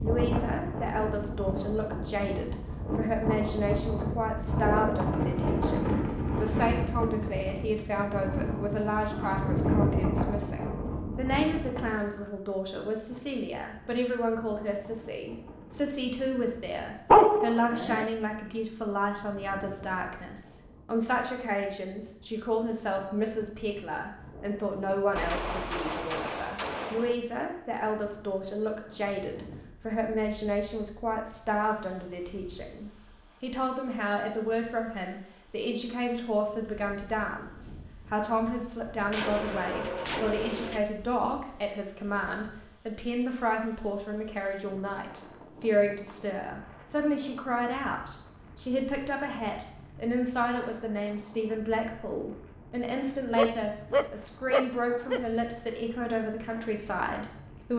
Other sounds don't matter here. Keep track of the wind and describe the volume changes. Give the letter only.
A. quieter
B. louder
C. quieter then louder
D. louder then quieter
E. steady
A.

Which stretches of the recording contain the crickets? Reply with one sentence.
The crickets can't be heard in this clip.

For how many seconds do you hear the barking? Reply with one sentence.
You can hear the barking for 3 seconds altogether.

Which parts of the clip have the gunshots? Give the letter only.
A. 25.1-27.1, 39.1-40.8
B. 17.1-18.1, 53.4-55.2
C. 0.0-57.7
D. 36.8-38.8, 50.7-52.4
A.